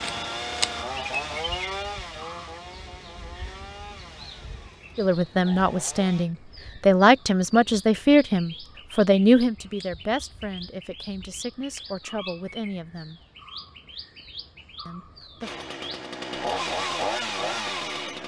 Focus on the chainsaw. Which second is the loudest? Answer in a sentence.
The volume of the chainsaw peaks at 17 seconds.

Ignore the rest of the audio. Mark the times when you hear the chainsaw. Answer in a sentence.
You can hear the chainsaw from 0.0 to 6.3 s and from 15.4 to 18.2 s.